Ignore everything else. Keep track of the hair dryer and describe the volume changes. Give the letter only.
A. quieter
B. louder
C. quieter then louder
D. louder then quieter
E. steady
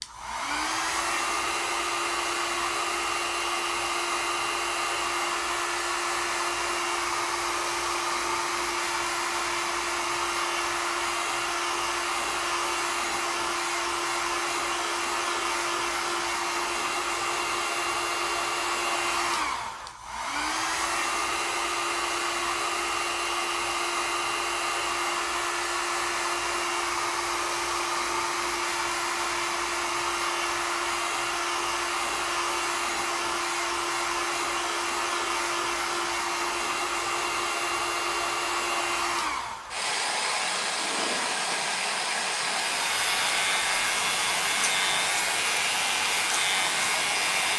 E.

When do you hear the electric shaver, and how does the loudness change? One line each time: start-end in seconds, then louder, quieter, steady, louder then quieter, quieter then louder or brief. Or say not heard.
42.7-47.5 steady.